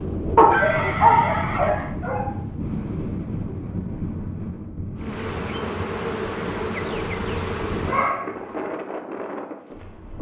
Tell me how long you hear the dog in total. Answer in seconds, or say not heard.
3 s.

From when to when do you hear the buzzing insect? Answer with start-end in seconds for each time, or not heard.
5.0-8.2.